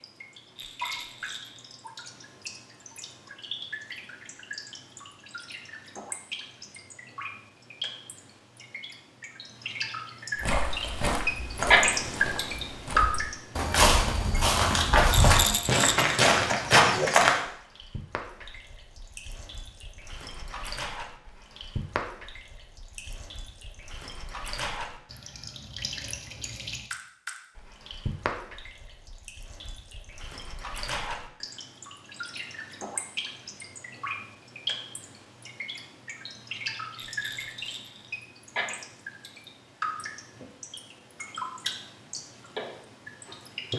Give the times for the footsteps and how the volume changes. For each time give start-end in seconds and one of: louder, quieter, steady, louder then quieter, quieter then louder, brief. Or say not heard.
10.4-17.4 quieter then louder.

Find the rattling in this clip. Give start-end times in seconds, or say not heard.
0.6-1.8, 15.1-16.1, 37.0-38.1.